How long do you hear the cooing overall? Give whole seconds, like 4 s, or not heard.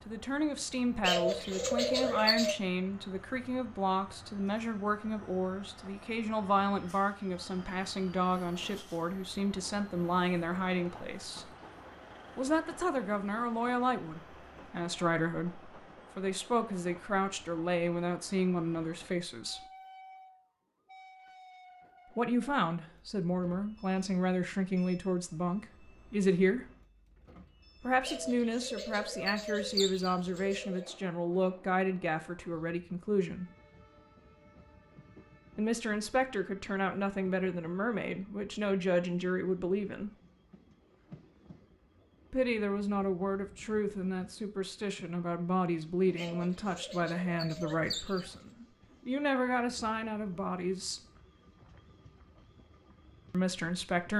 7 s.